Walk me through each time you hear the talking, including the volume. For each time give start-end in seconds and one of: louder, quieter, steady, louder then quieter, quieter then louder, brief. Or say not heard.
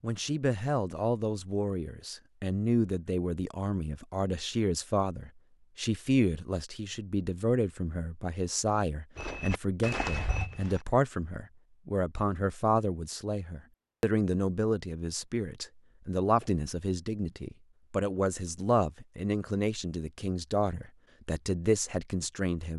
0.0-22.7 steady.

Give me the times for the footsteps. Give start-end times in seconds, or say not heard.
9.2-10.8.